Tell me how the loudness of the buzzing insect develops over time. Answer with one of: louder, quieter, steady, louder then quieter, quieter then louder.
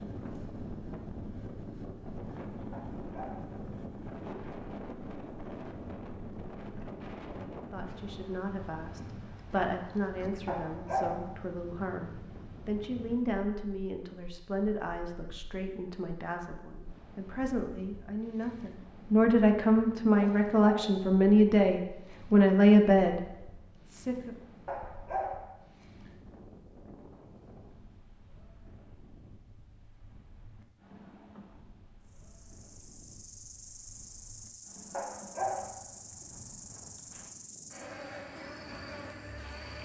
louder.